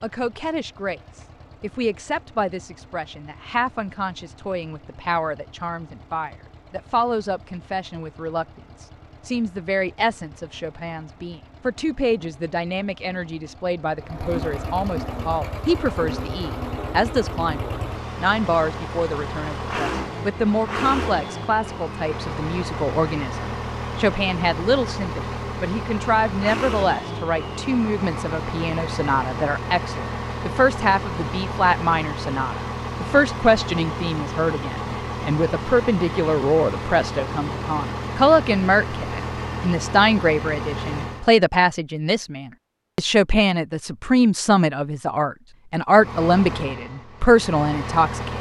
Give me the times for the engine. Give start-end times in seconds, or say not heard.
0.0-41.3, 45.9-48.3.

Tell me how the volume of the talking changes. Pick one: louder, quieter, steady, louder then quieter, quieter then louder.
louder.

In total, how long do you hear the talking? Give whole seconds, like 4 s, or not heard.
48 s.